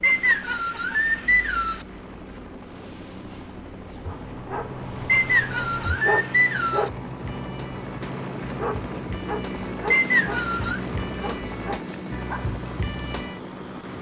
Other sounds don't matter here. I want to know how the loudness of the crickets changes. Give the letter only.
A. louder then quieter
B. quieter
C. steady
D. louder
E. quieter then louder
D.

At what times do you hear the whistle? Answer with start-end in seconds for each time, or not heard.
0.0-1.9, 5.0-6.9, 9.9-10.8.